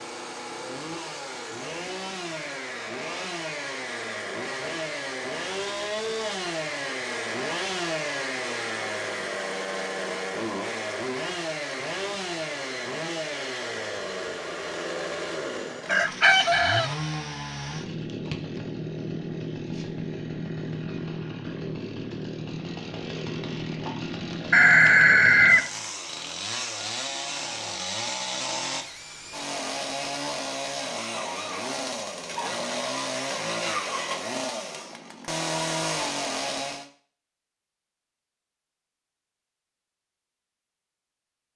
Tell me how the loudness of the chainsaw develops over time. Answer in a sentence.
The volume of the chainsaw stays about the same.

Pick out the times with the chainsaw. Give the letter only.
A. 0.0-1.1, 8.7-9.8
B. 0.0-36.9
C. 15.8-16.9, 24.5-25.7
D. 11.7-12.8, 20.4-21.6
B.